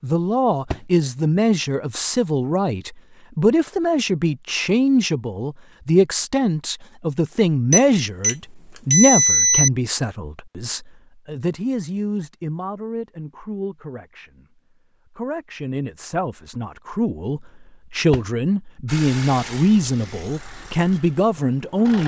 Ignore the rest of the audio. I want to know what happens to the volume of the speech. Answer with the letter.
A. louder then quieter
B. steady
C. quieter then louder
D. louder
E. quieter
C.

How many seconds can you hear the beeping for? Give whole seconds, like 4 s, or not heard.
2 s.